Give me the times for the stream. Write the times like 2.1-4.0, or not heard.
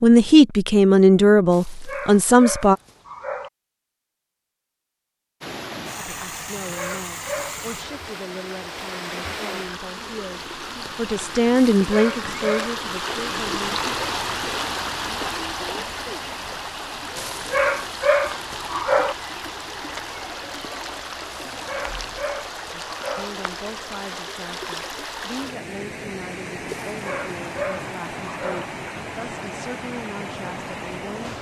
5.4-31.3.